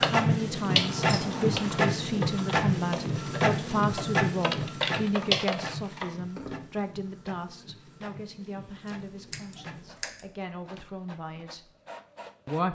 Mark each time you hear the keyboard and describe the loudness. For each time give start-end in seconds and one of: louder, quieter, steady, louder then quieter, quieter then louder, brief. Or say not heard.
0.0-5.7 quieter then louder.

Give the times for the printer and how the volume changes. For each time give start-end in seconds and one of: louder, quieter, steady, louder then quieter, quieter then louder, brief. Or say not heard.
0.0-12.6 quieter.